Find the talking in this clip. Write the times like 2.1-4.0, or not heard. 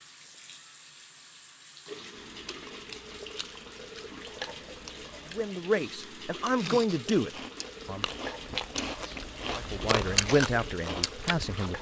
5.3-8.1, 9.6-11.7.